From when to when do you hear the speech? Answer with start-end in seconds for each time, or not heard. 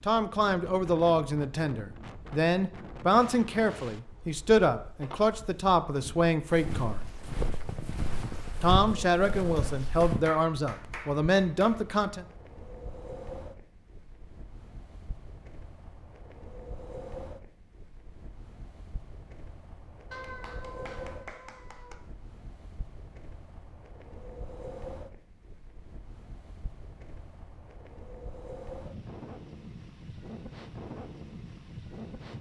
0.1-7.0, 8.6-12.2.